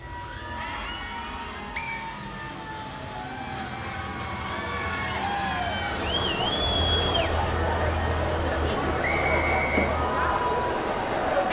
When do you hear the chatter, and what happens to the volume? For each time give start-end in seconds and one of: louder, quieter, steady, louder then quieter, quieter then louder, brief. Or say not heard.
0.1-11.4 louder.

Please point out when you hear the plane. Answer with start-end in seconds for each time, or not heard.
0.0-11.4.